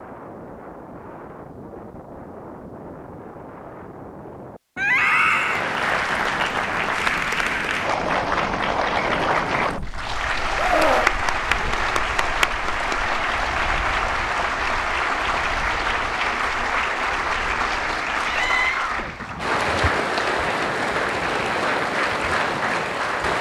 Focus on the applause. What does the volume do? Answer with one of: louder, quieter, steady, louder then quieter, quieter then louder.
steady.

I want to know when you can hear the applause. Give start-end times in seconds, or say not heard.
5.2-23.3.